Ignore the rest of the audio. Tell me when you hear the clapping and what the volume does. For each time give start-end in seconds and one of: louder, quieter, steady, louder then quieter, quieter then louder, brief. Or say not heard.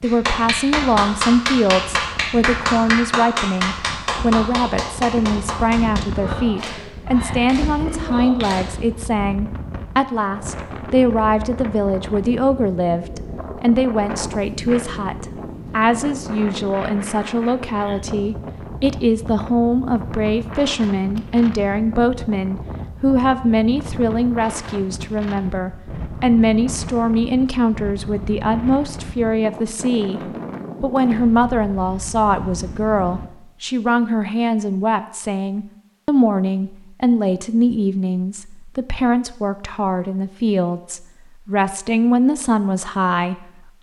0.0-8.8 quieter.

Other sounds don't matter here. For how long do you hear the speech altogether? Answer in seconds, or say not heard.
43 s.